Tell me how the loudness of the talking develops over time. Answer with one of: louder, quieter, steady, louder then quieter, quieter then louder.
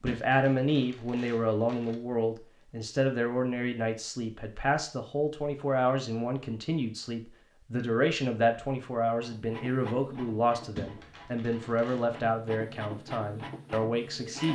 steady.